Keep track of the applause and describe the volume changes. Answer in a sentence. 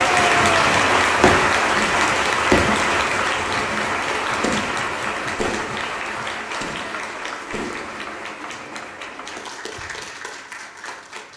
The volume of the applause goes down.